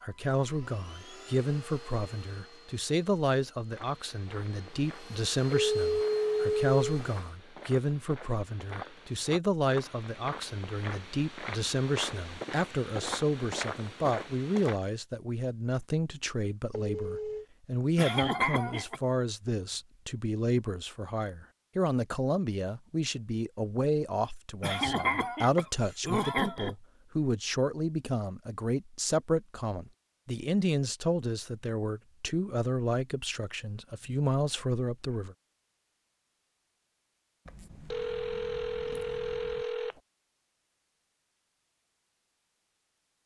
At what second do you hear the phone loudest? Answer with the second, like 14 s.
6 s.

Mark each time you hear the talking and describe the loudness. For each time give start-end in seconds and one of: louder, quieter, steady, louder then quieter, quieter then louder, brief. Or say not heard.
0.0-35.4 steady.